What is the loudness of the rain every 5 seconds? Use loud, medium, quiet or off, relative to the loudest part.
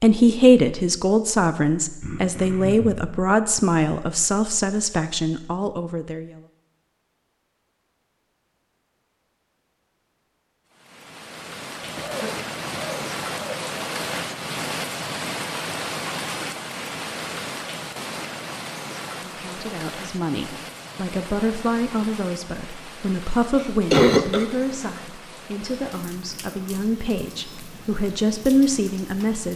off, off, loud, loud, medium, medium.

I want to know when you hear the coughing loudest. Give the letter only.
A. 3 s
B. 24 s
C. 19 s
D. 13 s
B.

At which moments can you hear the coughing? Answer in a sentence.
You can hear the coughing from 2.0 to 3.1 s, from 11.8 to 13.6 s and from 23.6 to 24.4 s.